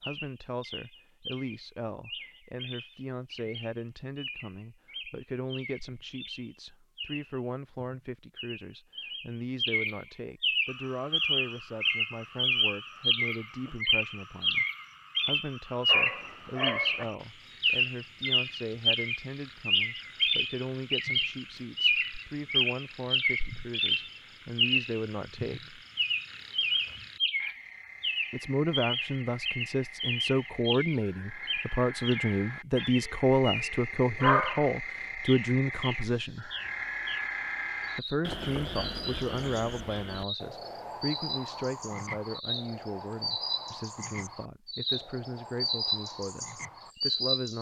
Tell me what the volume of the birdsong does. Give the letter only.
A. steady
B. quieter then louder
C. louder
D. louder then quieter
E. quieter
D.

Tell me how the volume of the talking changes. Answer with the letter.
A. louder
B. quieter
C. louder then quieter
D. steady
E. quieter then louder
C.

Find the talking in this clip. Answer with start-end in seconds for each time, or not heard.
0.0-14.7, 15.2-25.8, 28.3-36.5, 38.0-47.5.